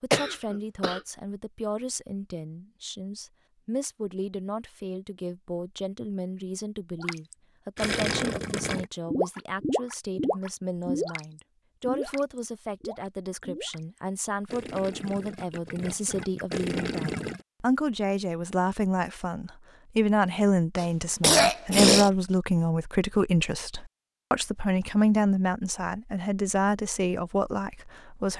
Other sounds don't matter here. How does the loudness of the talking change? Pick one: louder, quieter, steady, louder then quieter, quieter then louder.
louder.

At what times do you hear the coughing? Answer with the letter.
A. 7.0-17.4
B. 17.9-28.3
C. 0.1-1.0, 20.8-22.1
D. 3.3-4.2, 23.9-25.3
C.